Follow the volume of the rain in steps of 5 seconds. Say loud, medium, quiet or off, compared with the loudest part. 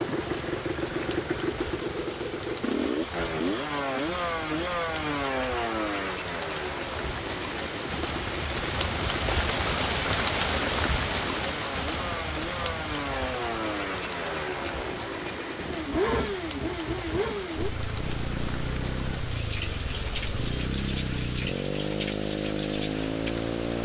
medium, loud, loud, medium, medium.